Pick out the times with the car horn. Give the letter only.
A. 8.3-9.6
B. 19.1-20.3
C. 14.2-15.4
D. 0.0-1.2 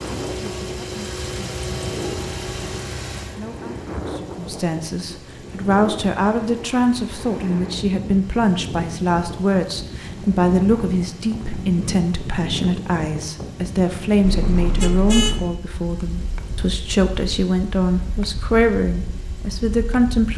C.